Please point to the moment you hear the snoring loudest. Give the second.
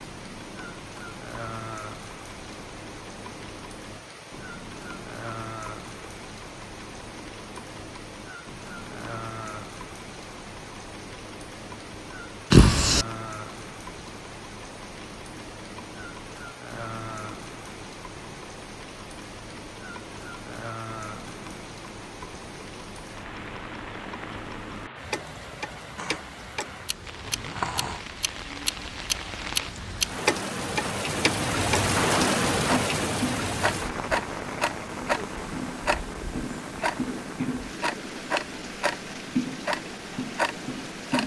13 s.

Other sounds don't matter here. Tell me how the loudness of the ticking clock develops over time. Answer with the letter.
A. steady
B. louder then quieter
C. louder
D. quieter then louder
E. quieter
C.